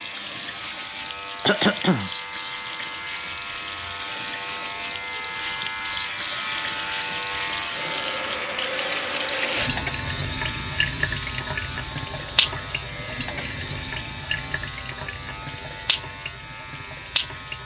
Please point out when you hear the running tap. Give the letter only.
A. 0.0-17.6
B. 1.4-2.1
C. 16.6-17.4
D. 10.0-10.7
A.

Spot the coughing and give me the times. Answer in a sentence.
The coughing can be heard from 1.4 to 2.1 s.